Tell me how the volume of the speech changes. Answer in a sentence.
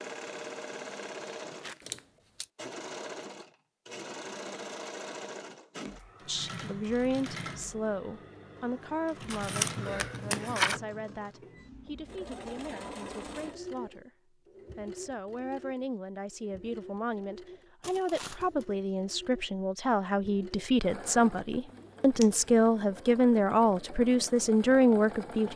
The volume of the speech goes down, then up.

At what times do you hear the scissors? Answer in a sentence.
The scissors can be heard from 1.8 to 2.5 s, from 9.3 to 10.8 s and from 21.6 to 22.5 s.